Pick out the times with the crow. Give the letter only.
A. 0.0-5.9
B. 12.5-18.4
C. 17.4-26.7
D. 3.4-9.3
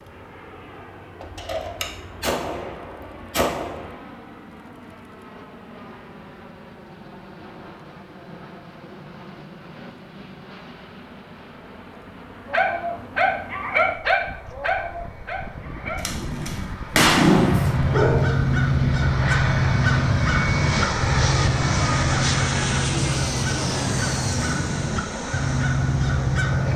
C.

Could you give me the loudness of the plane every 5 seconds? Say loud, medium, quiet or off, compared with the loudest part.
quiet, quiet, quiet, medium, loud, medium.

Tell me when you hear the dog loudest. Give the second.
17 s.